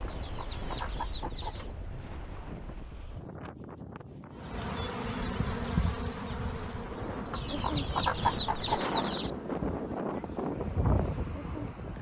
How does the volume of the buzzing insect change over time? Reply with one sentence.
The loudness of the buzzing insect goes down.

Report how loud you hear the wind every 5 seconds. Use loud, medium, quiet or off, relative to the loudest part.
medium, loud, loud.